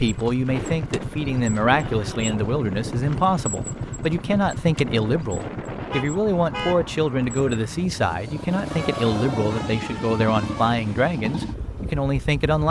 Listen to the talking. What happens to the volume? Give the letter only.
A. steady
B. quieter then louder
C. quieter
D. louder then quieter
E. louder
A.